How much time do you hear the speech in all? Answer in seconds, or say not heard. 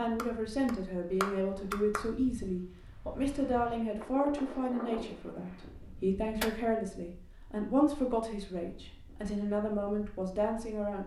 11 s.